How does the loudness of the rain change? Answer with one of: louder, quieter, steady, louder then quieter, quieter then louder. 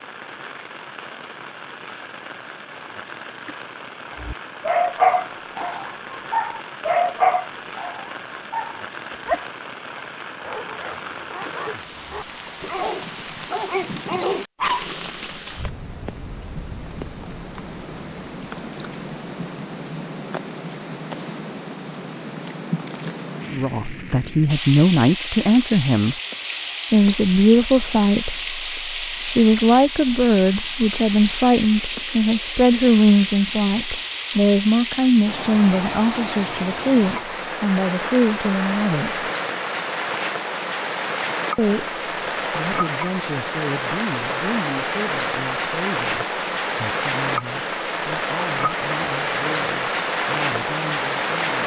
louder.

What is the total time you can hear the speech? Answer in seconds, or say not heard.
25 s.